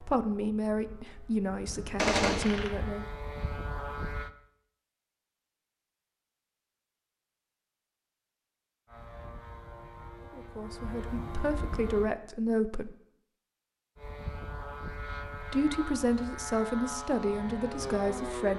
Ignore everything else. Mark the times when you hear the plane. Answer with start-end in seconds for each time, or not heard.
0.0-4.3, 8.8-12.1, 13.9-18.5.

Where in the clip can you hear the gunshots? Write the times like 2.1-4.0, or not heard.
1.9-2.7.